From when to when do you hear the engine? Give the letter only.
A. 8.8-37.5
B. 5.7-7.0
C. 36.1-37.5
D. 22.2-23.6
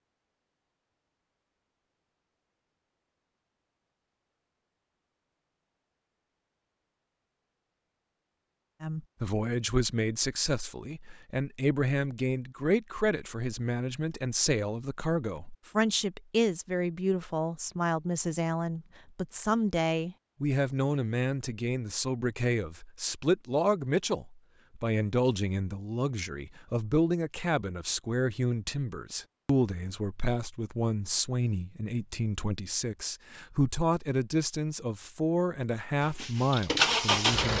C.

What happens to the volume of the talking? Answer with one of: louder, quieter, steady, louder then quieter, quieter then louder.
steady.